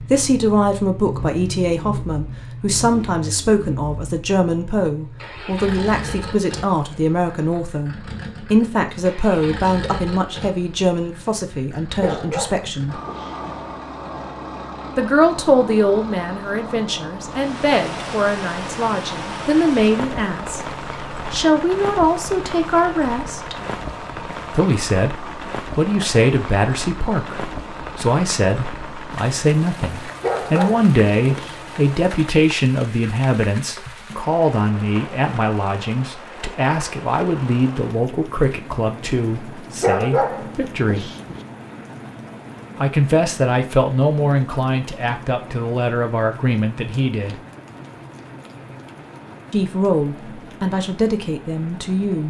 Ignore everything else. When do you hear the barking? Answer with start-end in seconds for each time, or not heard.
12.0-13.6, 30.2-31.6, 39.8-41.4.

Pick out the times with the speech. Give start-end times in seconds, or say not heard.
0.0-13.0, 14.9-23.6, 24.5-41.1, 42.8-47.4, 49.5-52.2.